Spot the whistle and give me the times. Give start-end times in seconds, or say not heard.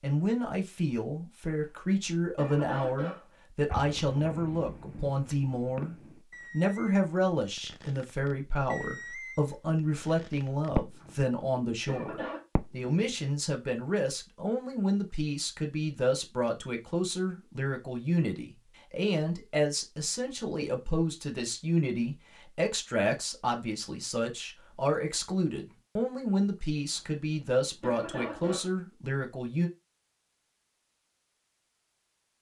not heard.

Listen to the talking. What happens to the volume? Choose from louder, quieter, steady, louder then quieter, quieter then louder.
steady.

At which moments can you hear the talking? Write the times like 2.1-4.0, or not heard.
0.0-29.7.